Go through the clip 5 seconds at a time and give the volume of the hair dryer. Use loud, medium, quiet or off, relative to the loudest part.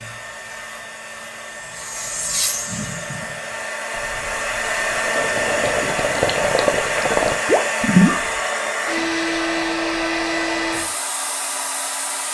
medium, loud, loud.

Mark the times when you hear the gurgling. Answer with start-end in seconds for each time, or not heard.
2.6-8.4.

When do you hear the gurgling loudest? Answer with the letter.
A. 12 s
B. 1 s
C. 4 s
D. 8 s
D.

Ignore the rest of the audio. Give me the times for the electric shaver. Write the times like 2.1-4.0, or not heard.
0.0-3.9.